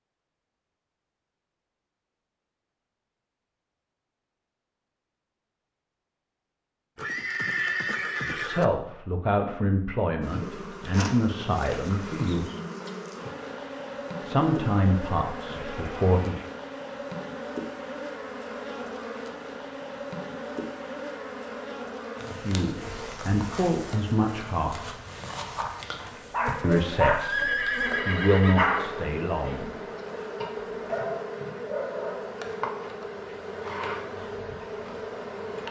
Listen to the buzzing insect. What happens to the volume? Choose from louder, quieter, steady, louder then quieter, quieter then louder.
steady.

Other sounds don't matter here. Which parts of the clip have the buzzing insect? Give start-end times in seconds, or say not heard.
10.2-35.6.